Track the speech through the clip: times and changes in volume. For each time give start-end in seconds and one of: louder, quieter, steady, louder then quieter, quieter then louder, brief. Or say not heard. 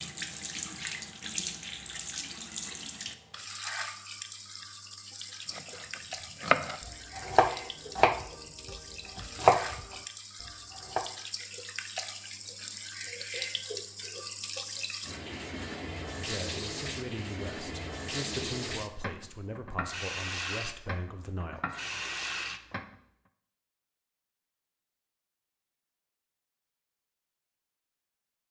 16.1-21.6 steady.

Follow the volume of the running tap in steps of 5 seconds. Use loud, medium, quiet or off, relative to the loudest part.
loud, medium, loud, loud, loud, off.